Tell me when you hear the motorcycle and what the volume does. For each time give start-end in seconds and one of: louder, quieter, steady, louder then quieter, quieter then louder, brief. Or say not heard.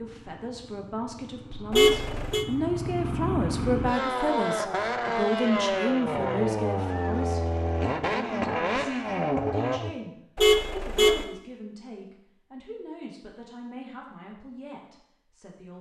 0.0-9.9 louder.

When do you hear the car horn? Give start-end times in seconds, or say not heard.
1.7-2.5, 10.3-11.2.